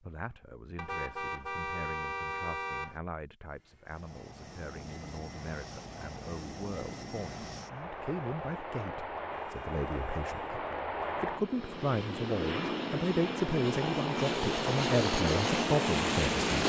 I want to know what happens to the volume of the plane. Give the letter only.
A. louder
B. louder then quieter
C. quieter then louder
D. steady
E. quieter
A.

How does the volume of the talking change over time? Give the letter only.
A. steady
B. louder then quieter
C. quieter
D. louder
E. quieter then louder
D.